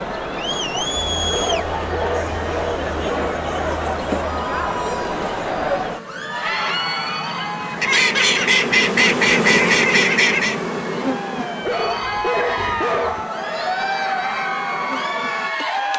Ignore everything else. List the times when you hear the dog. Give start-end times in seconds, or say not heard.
1.3-3.4, 11.6-13.2.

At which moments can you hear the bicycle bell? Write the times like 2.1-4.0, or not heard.
not heard.